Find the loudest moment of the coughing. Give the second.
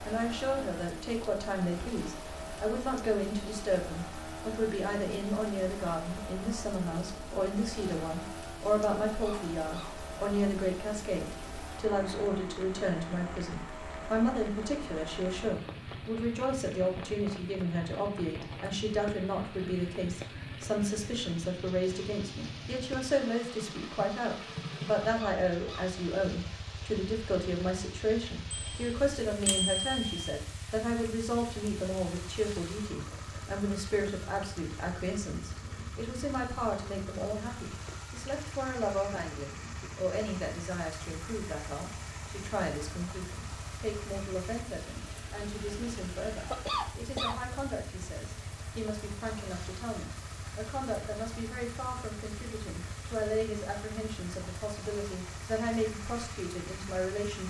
47 s.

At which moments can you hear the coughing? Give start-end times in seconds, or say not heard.
9.1-9.9, 25.1-25.9, 46.4-47.4.